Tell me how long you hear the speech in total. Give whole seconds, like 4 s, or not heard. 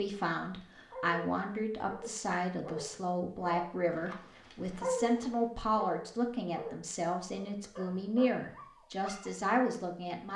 10 s.